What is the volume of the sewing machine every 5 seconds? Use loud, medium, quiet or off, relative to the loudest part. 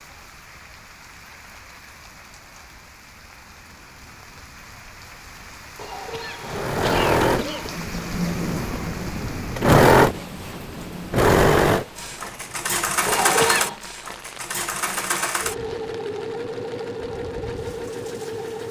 off, loud, loud, medium.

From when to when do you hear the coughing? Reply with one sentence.
You can hear the coughing from 5.8 to 7.8 s and from 13.1 to 13.8 s.